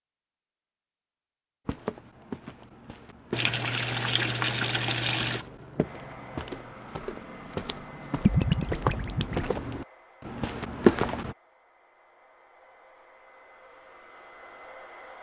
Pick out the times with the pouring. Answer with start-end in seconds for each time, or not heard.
3.3-5.5, 8.2-9.4.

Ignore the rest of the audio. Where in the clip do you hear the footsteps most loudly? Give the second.
11 s.